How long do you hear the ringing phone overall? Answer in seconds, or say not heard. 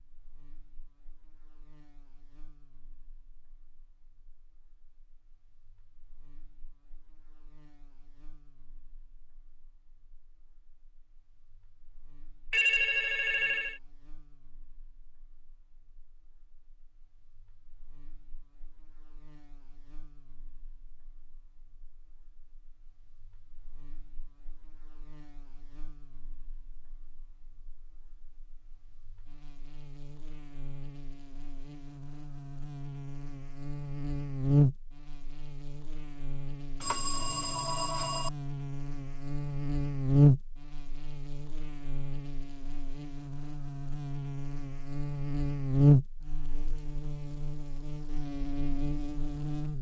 3 s.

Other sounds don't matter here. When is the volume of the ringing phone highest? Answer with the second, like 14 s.
13 s.